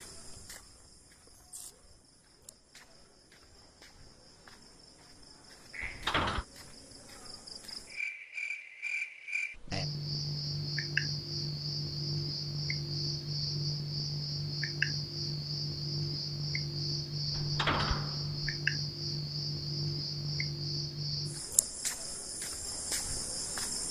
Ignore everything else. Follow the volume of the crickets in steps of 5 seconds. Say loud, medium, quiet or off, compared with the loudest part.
quiet, medium, loud, loud, loud.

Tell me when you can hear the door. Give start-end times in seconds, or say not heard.
5.8-6.5, 17.3-18.5.